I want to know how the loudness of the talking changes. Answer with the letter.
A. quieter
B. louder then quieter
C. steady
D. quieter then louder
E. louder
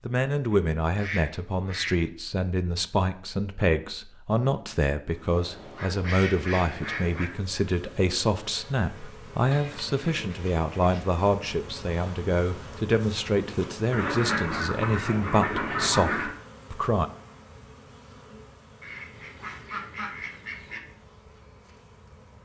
C.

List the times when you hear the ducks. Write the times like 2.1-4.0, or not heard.
0.5-2.0, 5.3-7.2, 9.5-11.2, 13.9-16.3, 18.8-20.8.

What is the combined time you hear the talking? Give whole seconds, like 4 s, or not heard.
17 s.